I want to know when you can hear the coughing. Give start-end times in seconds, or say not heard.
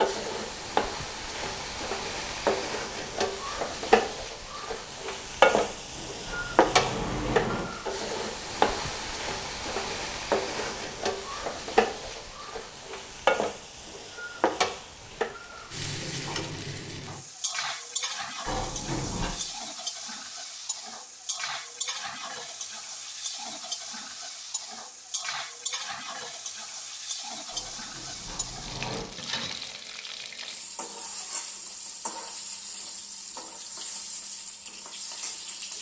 not heard.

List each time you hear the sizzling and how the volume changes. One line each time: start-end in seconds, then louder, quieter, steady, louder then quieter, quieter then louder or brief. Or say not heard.
0.0-35.7 quieter.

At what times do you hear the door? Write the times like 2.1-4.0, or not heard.
5.8-7.7, 18.4-19.3, 27.5-29.1.